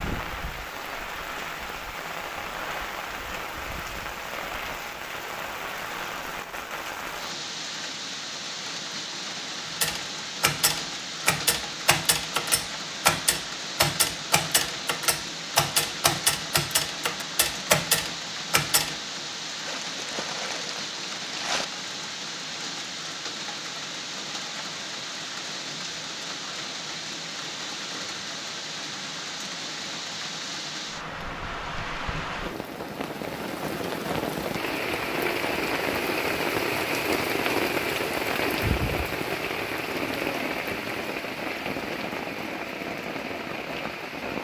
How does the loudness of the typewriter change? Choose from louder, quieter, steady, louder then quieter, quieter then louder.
steady.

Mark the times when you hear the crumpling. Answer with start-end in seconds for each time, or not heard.
19.6-21.6.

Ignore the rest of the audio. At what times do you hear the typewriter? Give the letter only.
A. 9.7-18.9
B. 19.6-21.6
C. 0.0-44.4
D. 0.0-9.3
A.